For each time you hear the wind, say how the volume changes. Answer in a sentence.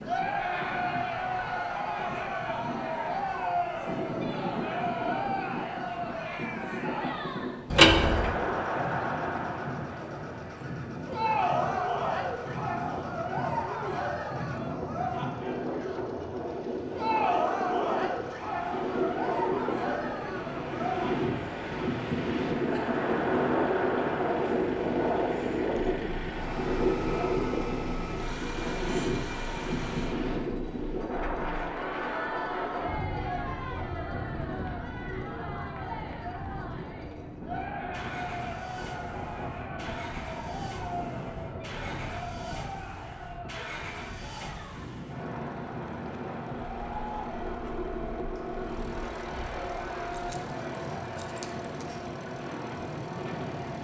The wind can be heard from 0.0 to 53.7 s, getting louder then quieter.